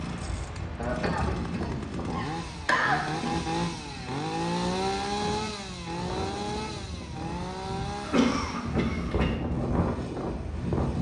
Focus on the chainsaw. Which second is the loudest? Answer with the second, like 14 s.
5 s.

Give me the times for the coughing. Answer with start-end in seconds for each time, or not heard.
0.8-3.3, 8.0-9.3.